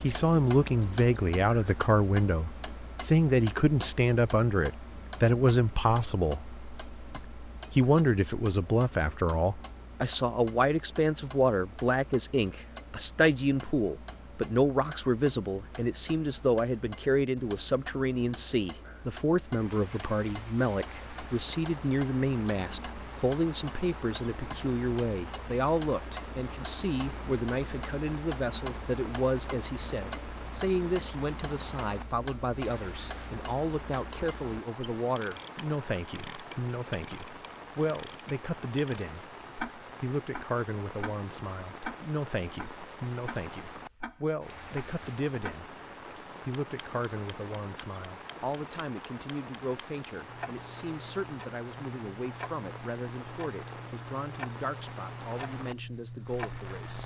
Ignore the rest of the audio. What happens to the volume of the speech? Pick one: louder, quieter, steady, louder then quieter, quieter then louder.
quieter.